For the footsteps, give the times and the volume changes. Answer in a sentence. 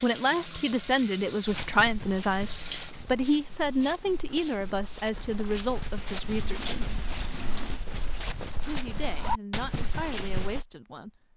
The footsteps can be heard from 1.4 to 10.7 s, getting louder.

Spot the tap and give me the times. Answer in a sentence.
You can hear the tap from 0.0 to 3.0 s and from 5.3 to 7.8 s.